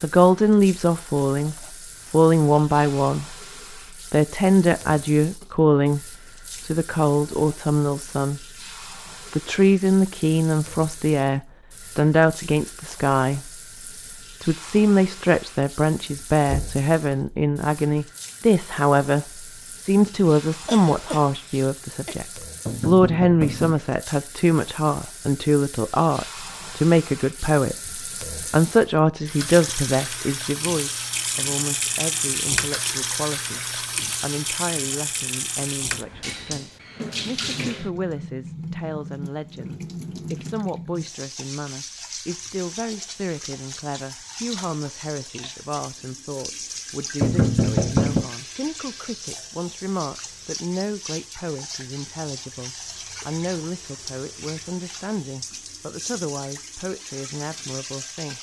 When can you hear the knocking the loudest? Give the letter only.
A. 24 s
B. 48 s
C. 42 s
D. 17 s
B.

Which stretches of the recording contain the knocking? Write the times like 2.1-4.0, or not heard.
16.4-16.9, 22.6-23.8, 47.2-48.2.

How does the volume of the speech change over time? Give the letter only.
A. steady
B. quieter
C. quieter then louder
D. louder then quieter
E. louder
B.